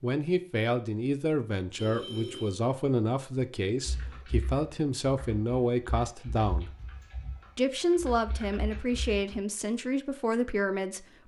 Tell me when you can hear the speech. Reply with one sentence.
The speech can be heard from 0.0 to 6.8 s and from 7.5 to 11.2 s.